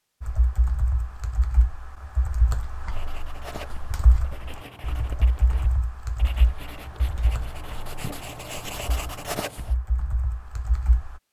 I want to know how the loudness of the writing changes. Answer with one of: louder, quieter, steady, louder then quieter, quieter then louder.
louder.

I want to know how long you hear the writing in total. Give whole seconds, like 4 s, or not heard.
7 s.